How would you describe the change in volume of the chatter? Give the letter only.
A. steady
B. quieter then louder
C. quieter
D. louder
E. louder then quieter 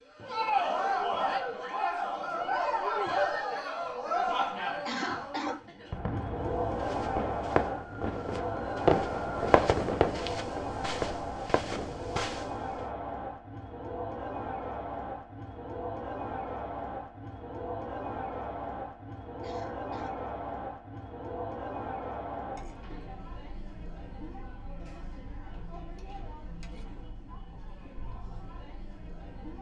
C.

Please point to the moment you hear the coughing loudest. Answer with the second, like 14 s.
5 s.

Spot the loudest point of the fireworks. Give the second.
9 s.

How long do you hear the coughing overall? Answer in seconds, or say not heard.
2 s.